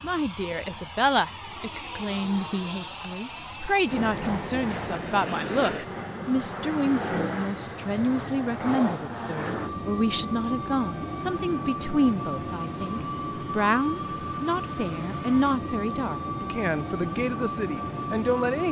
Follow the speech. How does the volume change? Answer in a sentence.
The volume of the speech stays about the same.